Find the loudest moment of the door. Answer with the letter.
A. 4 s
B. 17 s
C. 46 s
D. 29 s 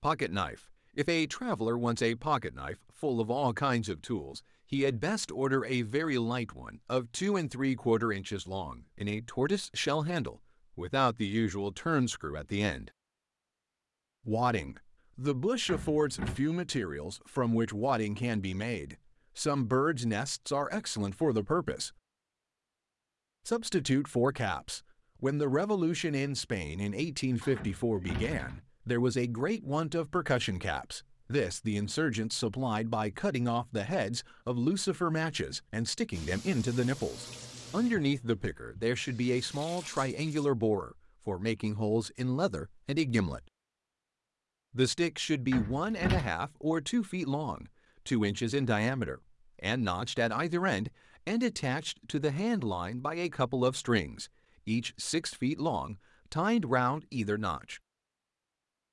C.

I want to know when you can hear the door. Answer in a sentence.
You can hear the door from 15.7 to 16.4 s, from 27.6 to 28.6 s and from 45.5 to 46.3 s.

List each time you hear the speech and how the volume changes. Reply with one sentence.
The speech can be heard from 0.0 to 12.9 s, at a steady volume; from 14.2 to 21.9 s, at a steady volume; from 23.4 to 43.4 s, at a steady volume; and from 44.7 to 57.8 s, at a steady volume.